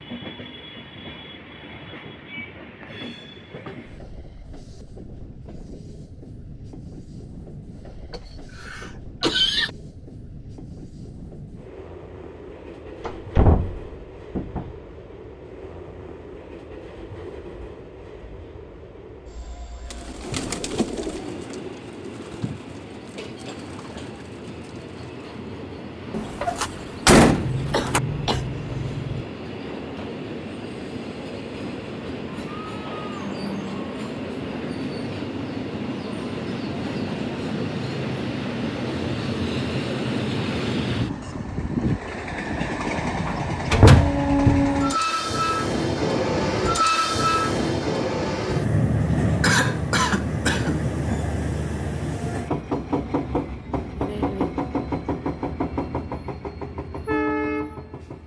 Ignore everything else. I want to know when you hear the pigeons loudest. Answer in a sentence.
The loudest moment of the pigeons is at 21 seconds.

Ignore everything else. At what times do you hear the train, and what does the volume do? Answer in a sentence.
The train can be heard from 0.0 to 58.2 s, getting louder.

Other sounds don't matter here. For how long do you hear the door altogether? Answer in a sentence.
You can hear the door for 5 seconds altogether.